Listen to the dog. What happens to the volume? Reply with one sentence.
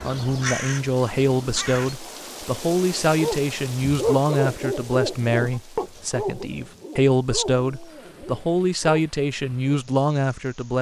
The volume of the dog goes down.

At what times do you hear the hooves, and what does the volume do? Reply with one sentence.
You can't hear the hooves here.